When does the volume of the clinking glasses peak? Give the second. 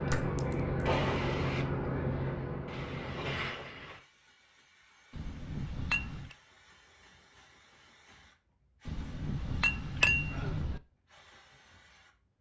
10 s.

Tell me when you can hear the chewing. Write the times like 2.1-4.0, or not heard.
not heard.